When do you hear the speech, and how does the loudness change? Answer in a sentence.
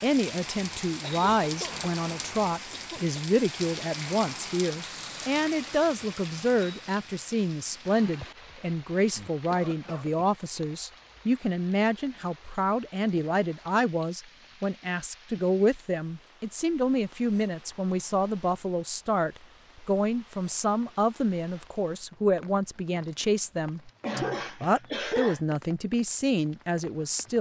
The speech can be heard from 0.0 to 27.3 s, at a steady volume.